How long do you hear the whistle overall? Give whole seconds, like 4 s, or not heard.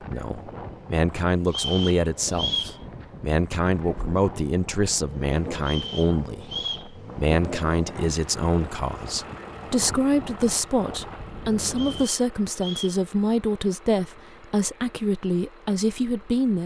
4 s.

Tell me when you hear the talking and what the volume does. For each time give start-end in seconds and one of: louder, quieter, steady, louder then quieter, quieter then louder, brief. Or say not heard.
0.0-16.6 steady.